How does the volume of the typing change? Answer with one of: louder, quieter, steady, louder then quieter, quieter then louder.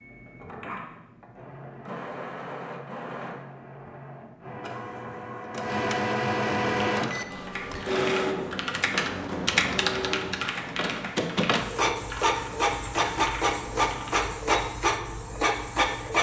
louder then quieter.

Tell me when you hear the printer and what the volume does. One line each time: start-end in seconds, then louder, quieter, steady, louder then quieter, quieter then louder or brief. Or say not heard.
0.0-16.1 louder.